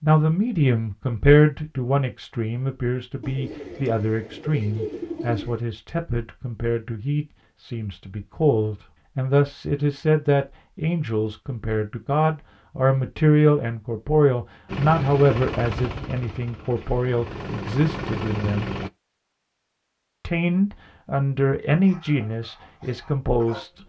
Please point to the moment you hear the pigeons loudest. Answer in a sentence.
The loudest moment of the pigeons is at 5 seconds.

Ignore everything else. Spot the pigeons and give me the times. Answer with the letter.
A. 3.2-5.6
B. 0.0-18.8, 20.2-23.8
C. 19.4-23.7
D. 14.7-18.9
A.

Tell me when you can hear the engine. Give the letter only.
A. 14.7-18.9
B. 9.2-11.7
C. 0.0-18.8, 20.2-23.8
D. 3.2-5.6
A.